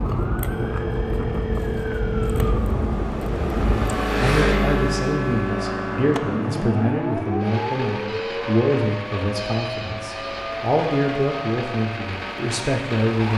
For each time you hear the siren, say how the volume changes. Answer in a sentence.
You can hear the siren from 0.0 to 13.3 s, getting quieter.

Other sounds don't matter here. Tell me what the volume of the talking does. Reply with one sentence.
The loudness of the talking stays about the same.